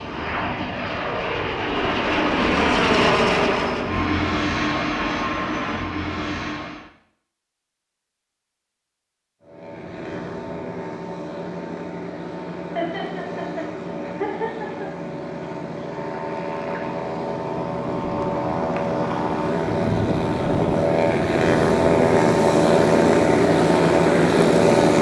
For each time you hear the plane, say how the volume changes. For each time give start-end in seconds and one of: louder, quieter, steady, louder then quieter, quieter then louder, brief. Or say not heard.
0.0-6.9 louder then quieter
9.4-24.9 louder.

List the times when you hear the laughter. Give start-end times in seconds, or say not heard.
12.8-14.9.